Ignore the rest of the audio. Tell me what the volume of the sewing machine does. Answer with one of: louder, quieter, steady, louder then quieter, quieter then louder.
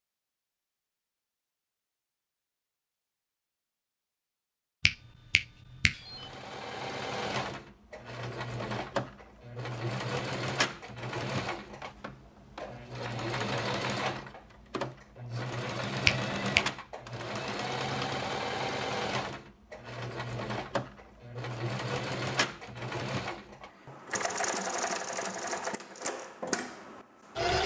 steady.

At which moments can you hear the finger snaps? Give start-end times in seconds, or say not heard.
4.8-6.3, 16.1-16.6.